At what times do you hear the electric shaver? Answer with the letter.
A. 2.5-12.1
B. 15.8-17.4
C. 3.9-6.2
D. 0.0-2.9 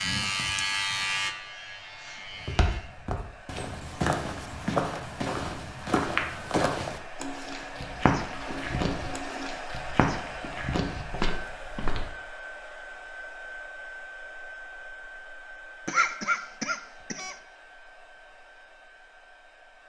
D.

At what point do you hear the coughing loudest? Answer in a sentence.
The volume of the coughing peaks at 16 seconds.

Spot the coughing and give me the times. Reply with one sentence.
The coughing can be heard from 15.8 to 17.4 s.